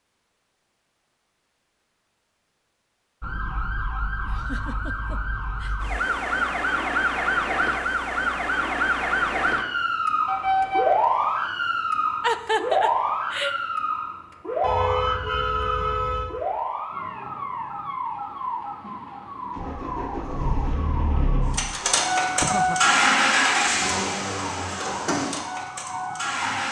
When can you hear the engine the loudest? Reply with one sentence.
The volume of the engine peaks at 23 seconds.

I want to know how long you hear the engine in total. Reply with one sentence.
The engine can be heard for 7 seconds in total.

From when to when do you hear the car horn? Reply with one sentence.
You can hear the car horn from 10.2 to 10.9 s and from 14.6 to 16.3 s.